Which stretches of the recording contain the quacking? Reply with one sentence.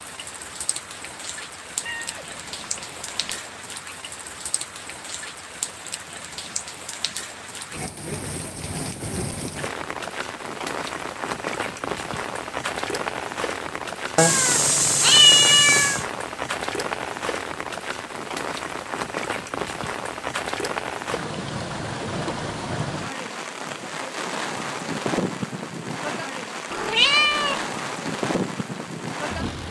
The quacking can't be heard in this clip.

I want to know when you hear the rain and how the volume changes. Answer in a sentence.
The rain can be heard from 0.0 to 29.6 s, getting louder.